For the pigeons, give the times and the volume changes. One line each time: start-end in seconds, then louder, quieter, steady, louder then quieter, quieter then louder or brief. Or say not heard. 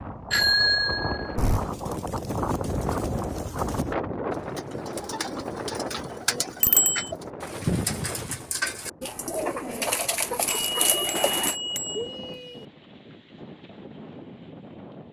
1.5-11.6 louder.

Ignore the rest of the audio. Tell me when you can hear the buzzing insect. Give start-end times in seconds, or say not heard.
not heard.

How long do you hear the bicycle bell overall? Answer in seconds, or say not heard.
4 s.